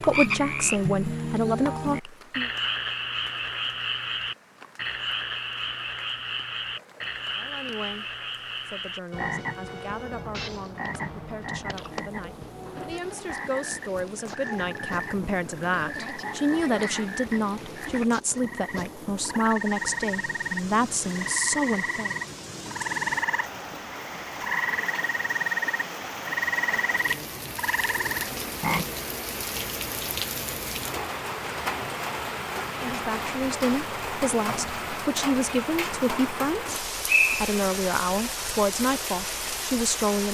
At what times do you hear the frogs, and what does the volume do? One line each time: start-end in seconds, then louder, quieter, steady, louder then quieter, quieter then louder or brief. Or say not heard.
0.0-28.9 quieter then louder.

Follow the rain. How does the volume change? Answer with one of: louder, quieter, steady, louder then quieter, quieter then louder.
louder.